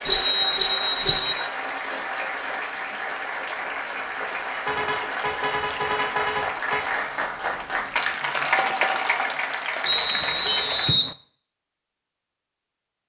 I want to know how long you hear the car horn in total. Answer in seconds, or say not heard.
4 s.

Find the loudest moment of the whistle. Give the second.
10 s.